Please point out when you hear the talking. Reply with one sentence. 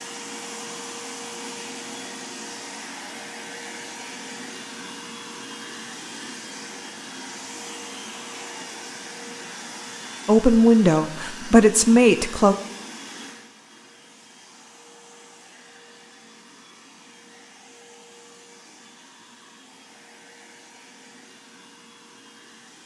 The talking can be heard from 10.2 to 12.6 s.